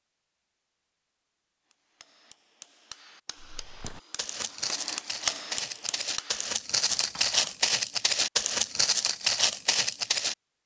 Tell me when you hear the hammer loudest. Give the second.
5 s.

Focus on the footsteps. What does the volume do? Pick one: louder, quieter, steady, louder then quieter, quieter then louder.
louder.